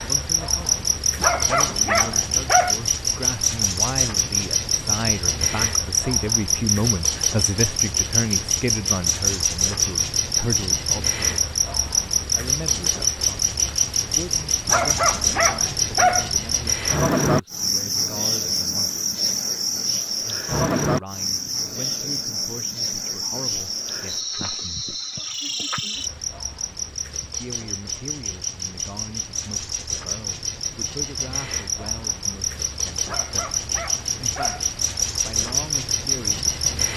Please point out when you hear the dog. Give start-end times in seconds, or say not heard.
1.2-2.8, 14.7-16.3, 33.0-34.7.